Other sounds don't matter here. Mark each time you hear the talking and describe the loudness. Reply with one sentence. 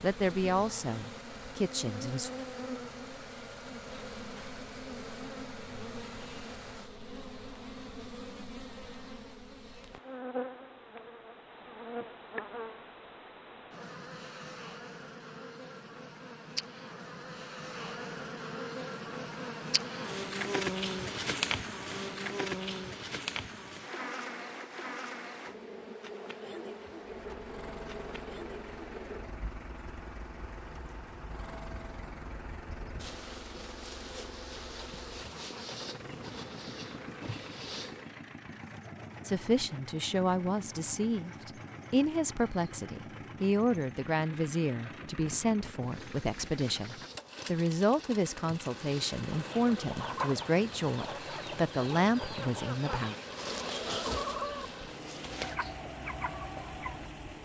The talking can be heard briefly from 0.0 to 2.3 s; and from 39.2 to 53.1 s, at a steady volume.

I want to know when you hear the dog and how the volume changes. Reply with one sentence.
The dog can't be heard in this clip.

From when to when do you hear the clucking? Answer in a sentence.
The clucking can be heard from 49.3 to 57.1 s.